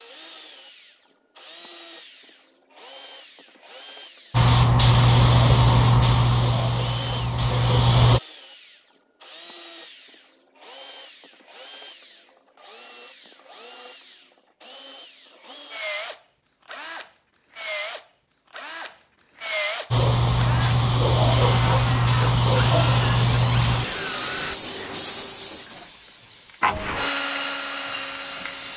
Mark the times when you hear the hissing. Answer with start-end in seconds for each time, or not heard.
4.3-8.2, 19.9-28.7.